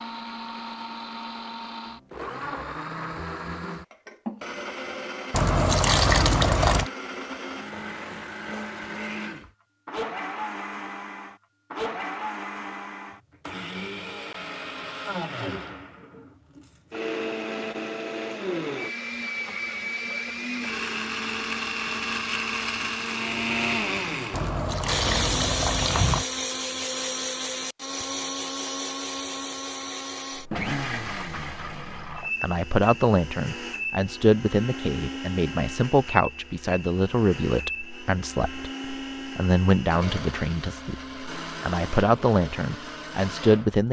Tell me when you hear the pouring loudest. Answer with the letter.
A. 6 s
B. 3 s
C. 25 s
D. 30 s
A.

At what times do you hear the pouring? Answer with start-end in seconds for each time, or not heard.
5.3-6.9, 24.3-26.2.